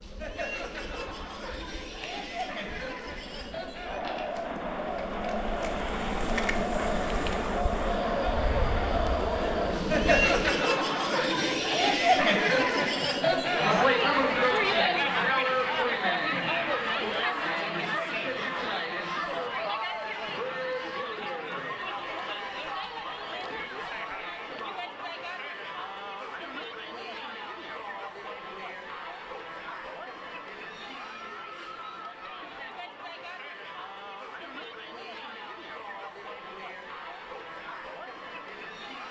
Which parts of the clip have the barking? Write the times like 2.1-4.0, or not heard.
not heard.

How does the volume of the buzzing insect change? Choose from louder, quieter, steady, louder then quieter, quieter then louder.
louder.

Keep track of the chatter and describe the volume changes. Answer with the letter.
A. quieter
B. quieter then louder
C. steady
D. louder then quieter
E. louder
D.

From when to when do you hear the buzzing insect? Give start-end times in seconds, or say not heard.
0.0-10.6.